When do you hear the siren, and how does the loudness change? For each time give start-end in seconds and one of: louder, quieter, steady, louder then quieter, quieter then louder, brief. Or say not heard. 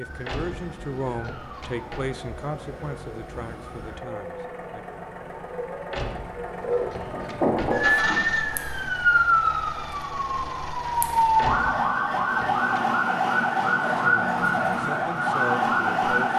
0.0-16.3 louder.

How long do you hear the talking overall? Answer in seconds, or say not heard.
7 s.